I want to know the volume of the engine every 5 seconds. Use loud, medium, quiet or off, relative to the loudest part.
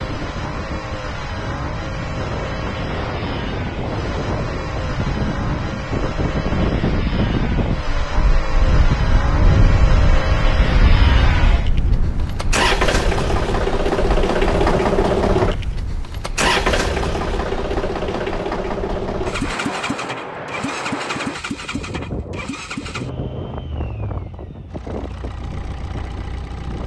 medium, medium, loud, loud, medium, quiet.